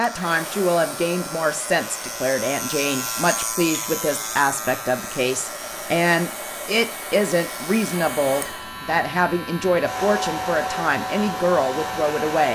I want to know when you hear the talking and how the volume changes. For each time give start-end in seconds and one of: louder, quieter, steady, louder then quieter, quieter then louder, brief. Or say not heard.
0.0-12.4 steady.